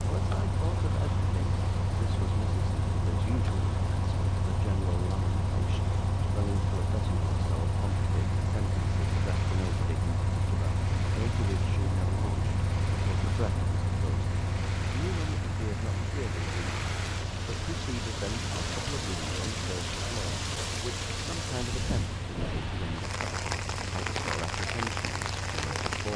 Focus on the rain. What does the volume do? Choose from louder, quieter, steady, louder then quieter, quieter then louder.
louder.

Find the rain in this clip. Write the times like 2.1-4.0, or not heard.
0.0-26.1.